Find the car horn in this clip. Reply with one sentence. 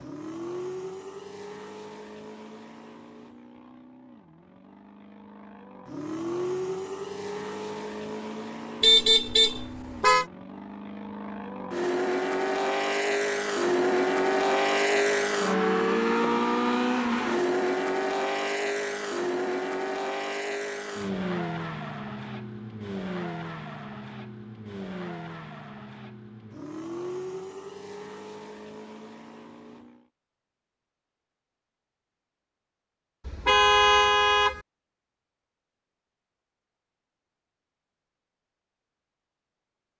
The car horn can be heard from 8.8 to 10.2 s and from 33.2 to 34.6 s.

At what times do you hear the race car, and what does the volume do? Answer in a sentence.
The race car can be heard from 0.0 to 30.1 s, getting louder then quieter.